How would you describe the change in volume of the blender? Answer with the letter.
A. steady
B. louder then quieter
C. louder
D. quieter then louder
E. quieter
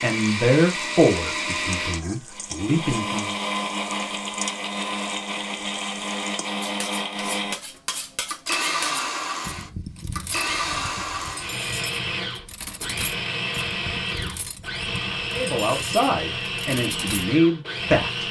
A.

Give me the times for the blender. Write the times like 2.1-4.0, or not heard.
0.0-18.2.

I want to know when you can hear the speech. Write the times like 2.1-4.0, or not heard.
0.0-3.4, 15.3-18.2.